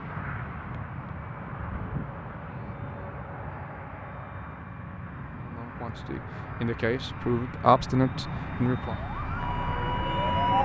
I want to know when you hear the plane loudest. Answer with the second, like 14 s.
10 s.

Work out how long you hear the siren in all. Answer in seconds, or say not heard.
2 s.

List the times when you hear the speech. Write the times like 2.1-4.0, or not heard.
5.4-8.9.